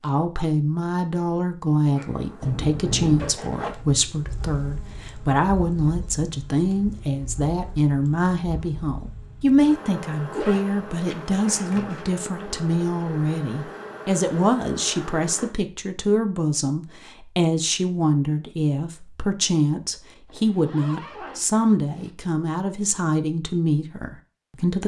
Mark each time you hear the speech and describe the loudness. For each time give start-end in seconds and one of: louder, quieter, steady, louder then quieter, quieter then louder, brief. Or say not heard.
0.0-24.8 steady.